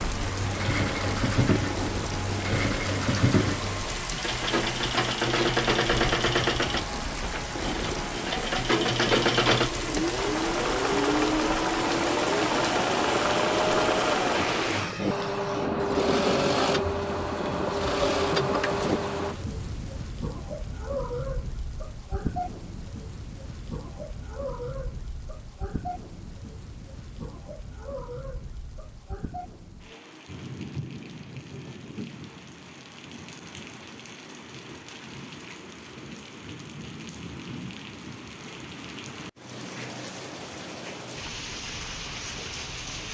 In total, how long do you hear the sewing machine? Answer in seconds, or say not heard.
19 s.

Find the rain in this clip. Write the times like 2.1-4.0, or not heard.
0.0-43.0.